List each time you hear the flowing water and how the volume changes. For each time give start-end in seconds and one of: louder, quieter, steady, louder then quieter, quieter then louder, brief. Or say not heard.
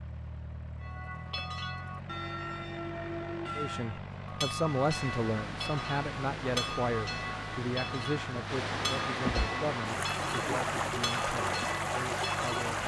4.5-12.8 louder.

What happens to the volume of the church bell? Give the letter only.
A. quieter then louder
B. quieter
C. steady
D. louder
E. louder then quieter
C.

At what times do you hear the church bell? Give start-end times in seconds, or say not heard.
0.8-12.7.